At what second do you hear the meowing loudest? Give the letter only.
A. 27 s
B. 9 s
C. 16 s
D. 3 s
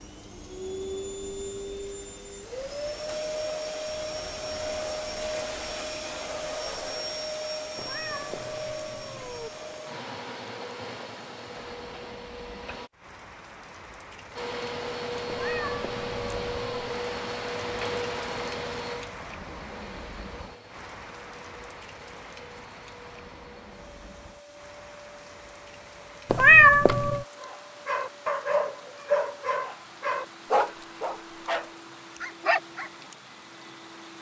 A.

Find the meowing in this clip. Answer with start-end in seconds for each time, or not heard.
7.8-9.5, 15.2-16.9, 26.3-27.2.